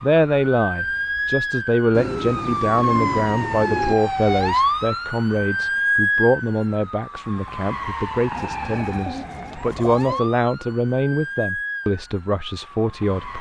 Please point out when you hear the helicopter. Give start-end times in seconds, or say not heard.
not heard.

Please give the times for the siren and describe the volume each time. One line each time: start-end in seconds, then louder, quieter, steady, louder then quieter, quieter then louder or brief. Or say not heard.
0.0-13.3 quieter.